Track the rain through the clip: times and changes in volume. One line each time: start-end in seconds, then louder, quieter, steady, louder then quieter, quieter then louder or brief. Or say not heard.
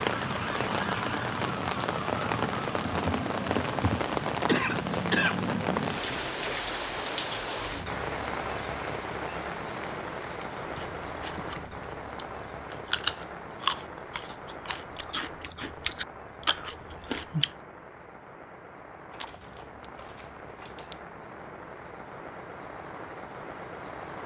0.0-24.2 quieter.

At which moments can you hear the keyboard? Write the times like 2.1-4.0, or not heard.
2.2-4.2, 9.8-11.6, 19.1-20.9.